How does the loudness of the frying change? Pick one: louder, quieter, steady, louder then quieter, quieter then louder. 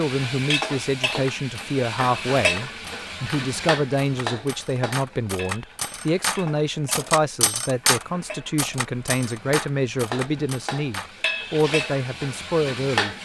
quieter then louder.